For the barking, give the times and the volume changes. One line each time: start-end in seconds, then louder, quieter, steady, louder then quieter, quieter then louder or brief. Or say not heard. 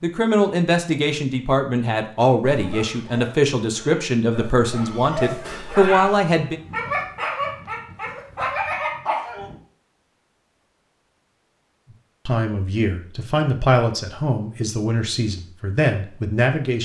2.4-9.6 louder.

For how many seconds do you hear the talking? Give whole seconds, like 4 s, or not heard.
11 s.